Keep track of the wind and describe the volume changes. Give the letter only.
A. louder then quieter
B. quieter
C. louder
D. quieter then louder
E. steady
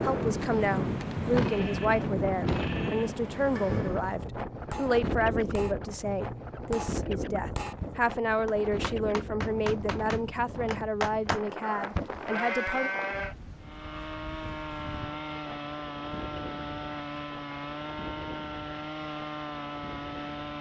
B.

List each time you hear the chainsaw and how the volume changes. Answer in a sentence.
You can hear the chainsaw from 13.6 to 20.5 s, at a steady volume.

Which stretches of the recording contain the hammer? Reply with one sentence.
The hammer can be heard from 3.4 to 12.2 s.